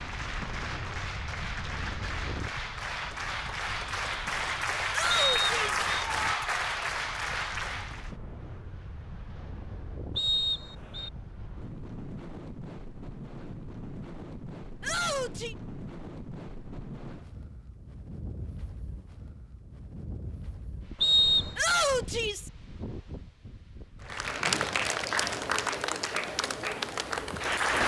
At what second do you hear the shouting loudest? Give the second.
22 s.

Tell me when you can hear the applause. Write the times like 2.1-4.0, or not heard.
0.0-8.2, 24.0-27.8.